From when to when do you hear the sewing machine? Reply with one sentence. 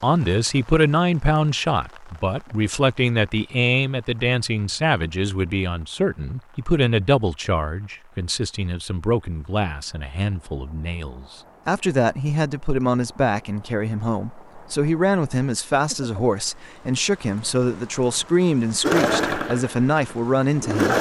The sewing machine can be heard from 18.8 to 20.9 s.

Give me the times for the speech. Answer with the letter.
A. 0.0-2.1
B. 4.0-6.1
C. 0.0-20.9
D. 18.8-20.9
C.